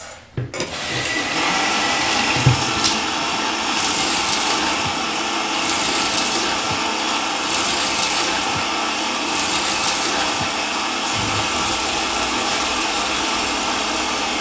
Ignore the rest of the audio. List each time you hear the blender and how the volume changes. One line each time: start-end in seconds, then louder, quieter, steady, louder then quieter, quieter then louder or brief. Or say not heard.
0.0-14.3 steady.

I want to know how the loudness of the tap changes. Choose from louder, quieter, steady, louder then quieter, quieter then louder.
quieter.